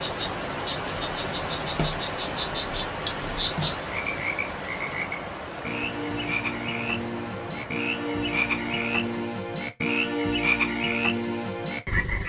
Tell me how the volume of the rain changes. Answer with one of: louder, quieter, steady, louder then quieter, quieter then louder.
quieter.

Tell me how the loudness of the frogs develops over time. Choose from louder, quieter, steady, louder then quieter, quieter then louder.
louder.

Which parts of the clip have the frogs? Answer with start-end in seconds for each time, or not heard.
0.0-12.2.